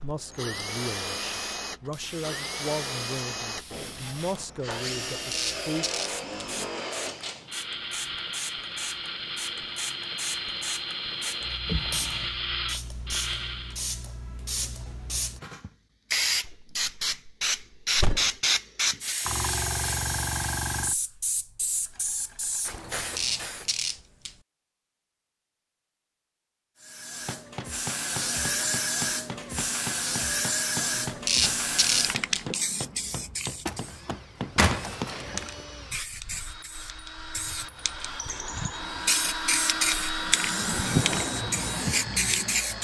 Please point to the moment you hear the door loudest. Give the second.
35 s.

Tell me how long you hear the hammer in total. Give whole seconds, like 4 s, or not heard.
8 s.